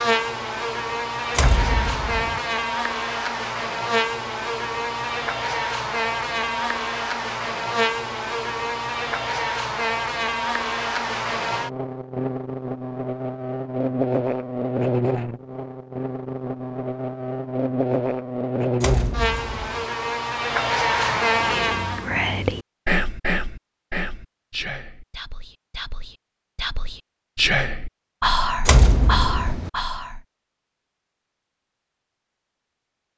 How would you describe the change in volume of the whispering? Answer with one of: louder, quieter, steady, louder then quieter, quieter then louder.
quieter then louder.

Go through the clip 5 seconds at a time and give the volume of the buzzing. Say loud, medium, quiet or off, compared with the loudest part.
loud, loud, loud, loud, loud, off, off.